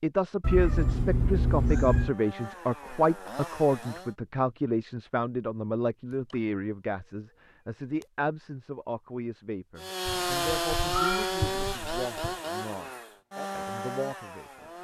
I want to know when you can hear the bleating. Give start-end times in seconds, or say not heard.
not heard.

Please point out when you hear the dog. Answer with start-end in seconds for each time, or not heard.
not heard.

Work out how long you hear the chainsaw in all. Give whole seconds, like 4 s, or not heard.
7 s.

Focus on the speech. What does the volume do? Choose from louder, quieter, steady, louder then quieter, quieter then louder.
quieter.